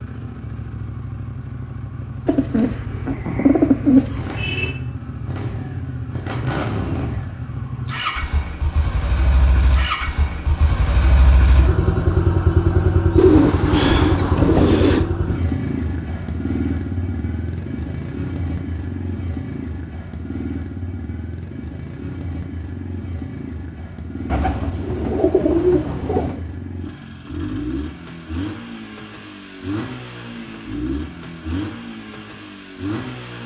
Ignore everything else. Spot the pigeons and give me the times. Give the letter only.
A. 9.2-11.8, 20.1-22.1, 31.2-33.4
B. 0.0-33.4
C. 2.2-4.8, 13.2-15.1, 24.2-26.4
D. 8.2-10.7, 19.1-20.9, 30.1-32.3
C.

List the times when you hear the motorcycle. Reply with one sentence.
The motorcycle can be heard from 0.0 to 33.4 s.